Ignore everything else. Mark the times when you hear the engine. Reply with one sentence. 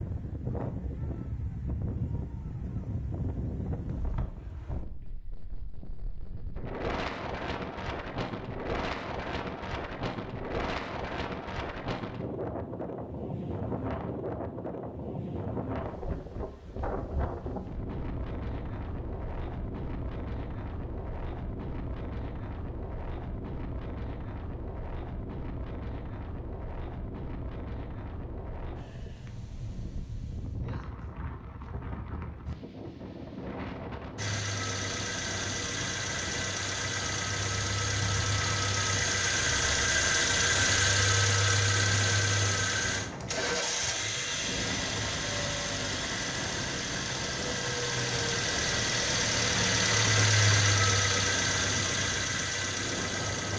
You can hear the engine from 34.1 to 53.5 s.